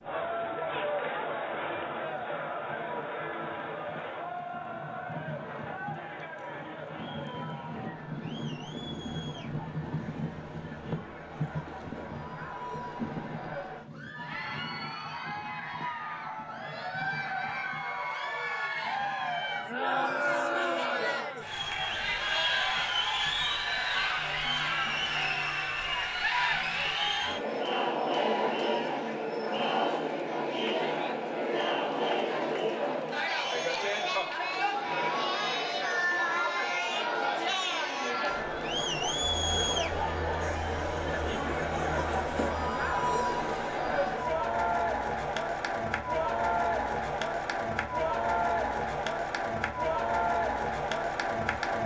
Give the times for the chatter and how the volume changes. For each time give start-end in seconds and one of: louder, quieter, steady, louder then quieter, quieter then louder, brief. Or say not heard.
0.0-51.8 louder.